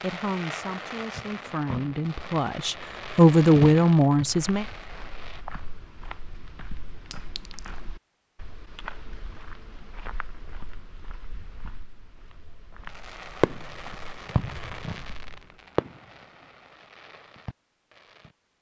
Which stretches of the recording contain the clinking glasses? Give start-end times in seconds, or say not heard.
7.1-7.8.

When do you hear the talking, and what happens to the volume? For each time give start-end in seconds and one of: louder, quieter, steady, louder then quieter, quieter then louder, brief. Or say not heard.
0.0-4.7 louder.